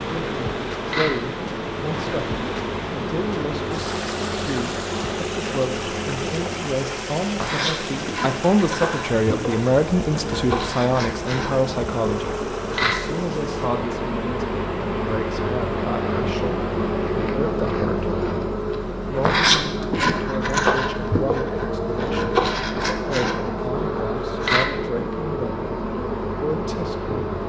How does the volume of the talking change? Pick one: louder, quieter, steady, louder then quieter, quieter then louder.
louder then quieter.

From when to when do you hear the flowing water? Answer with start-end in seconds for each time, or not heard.
0.0-17.4.